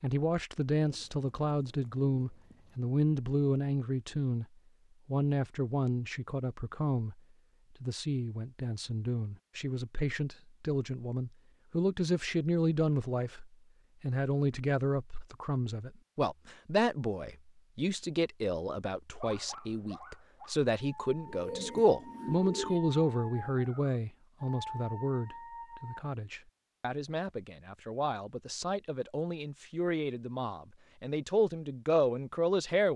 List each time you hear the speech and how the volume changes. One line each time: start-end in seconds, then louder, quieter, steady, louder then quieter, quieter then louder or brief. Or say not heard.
0.0-4.5 steady
5.0-7.2 brief
7.8-32.9 steady.